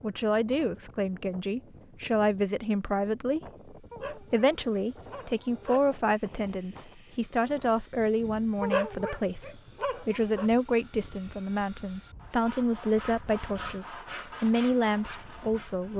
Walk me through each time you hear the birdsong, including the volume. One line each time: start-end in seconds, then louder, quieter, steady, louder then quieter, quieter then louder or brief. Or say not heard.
not heard.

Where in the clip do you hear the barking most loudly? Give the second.
9 s.